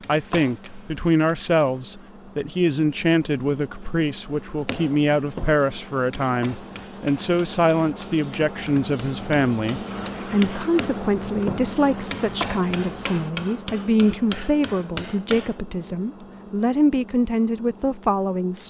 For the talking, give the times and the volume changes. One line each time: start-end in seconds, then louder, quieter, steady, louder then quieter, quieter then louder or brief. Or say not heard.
0.1-18.6 steady.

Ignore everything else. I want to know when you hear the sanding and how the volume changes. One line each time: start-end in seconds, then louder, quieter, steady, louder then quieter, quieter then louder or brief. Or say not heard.
not heard.